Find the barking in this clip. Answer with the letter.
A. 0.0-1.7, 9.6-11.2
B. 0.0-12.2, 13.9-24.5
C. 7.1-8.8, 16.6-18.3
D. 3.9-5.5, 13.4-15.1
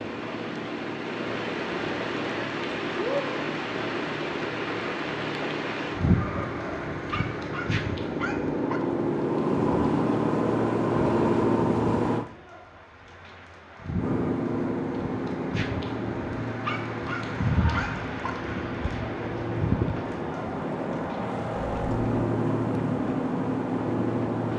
C.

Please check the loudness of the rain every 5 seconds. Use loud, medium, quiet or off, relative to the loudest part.
loud, loud, medium, loud, medium.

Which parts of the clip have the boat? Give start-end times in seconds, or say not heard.
0.0-12.2, 13.9-24.5.